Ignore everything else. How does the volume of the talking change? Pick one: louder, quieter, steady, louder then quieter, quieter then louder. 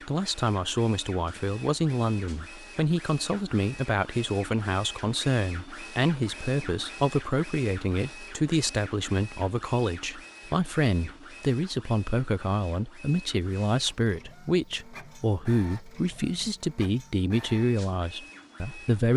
steady.